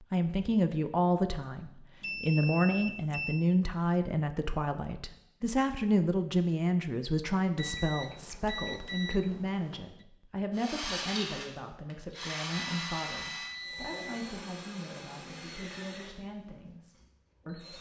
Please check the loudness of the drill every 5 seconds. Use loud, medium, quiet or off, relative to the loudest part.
off, off, loud, medium.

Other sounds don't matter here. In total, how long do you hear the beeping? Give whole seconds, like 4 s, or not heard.
6 s.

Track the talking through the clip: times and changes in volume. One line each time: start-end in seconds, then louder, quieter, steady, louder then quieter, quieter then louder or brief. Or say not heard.
0.1-17.7 quieter.